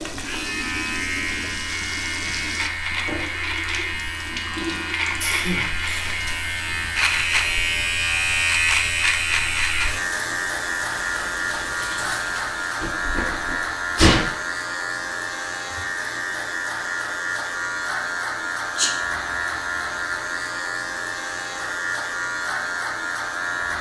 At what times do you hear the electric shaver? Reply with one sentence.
The electric shaver can be heard from 0.0 to 23.7 s.